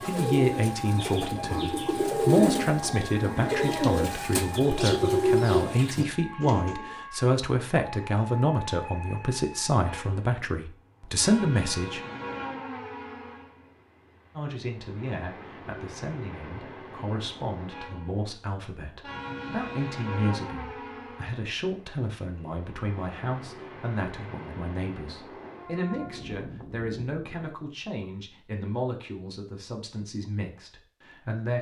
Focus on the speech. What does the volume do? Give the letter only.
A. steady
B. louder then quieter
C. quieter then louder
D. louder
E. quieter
E.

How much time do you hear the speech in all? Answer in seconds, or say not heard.
29 s.